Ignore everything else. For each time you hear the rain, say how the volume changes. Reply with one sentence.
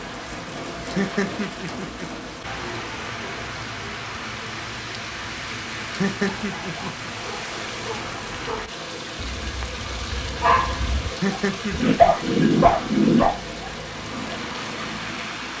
The rain can be heard from 0.0 to 15.5 s, at a steady volume.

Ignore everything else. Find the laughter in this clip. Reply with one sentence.
The laughter can be heard from 0.8 to 2.0 s, from 5.8 to 7.1 s and from 11.0 to 12.3 s.